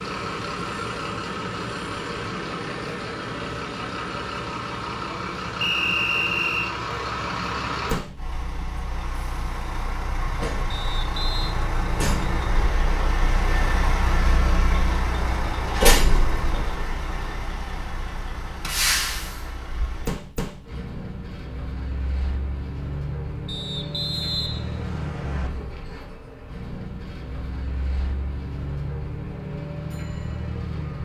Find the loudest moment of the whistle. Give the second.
6 s.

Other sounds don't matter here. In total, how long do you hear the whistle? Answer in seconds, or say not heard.
4 s.